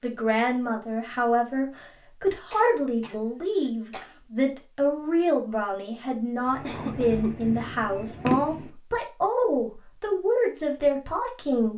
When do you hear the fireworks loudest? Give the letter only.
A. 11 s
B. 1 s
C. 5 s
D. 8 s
D.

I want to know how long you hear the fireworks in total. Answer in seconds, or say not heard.
2 s.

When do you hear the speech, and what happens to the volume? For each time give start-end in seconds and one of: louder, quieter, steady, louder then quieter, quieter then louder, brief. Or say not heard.
0.0-11.7 steady.